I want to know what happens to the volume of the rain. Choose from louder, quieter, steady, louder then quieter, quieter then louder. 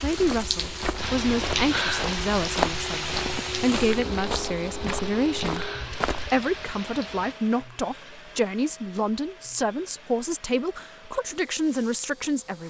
quieter.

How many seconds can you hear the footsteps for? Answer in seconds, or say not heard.
6 s.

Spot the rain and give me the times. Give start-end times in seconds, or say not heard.
0.0-7.3.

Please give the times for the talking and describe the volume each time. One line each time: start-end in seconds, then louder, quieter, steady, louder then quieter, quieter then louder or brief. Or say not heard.
0.0-12.6 steady.